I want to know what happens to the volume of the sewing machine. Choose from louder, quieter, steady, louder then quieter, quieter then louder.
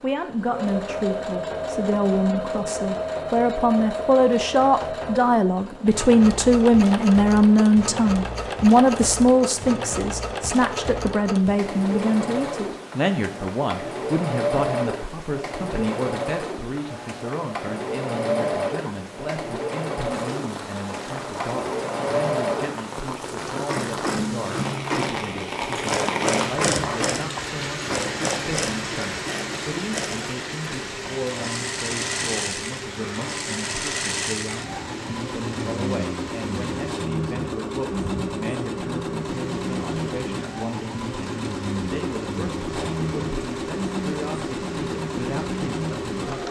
steady.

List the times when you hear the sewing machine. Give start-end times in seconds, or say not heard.
0.0-46.4.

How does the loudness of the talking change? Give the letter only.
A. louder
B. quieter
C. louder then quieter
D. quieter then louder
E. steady
B.